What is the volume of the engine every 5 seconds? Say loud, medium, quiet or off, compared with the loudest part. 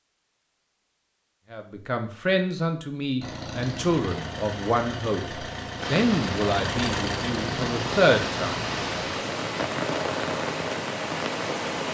loud, loud, off.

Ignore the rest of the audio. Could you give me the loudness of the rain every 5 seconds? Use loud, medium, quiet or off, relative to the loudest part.
off, loud, loud.